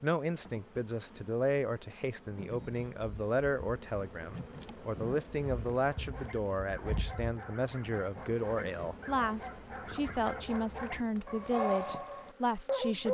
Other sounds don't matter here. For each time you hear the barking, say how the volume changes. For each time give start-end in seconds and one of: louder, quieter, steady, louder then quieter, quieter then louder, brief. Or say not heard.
6.0-13.0 louder.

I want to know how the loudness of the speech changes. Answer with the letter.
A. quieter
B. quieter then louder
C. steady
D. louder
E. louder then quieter
C.